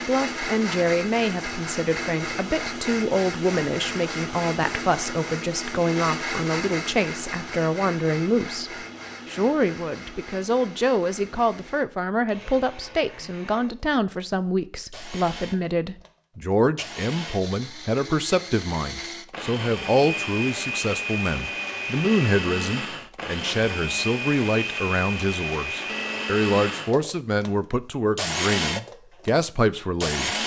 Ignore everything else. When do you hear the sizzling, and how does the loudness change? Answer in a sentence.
The sizzling can't be heard in this clip.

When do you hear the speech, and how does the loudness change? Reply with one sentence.
The speech can be heard from 0.0 to 30.4 s, at a steady volume.